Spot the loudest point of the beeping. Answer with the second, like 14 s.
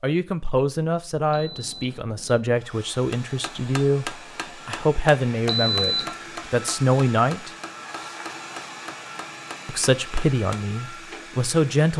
6 s.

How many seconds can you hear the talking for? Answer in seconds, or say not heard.
10 s.